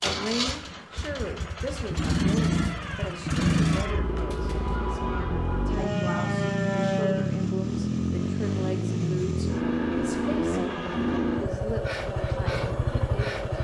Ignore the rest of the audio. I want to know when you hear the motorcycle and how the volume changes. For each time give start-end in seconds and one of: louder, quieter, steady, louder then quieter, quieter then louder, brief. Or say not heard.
0.0-13.6 steady.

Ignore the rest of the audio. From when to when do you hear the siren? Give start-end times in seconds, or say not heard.
3.8-7.3.